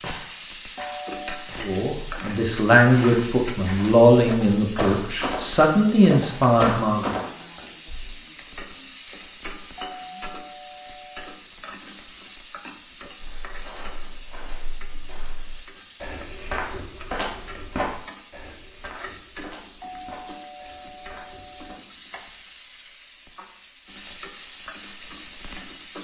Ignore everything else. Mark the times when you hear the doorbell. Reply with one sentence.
The doorbell can be heard from 0.8 to 1.5 s, from 9.8 to 11.3 s and from 19.8 to 21.8 s.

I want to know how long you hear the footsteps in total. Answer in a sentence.
You can hear the footsteps for 17 seconds altogether.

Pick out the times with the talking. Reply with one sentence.
You can hear the talking from 1.6 to 7.2 s.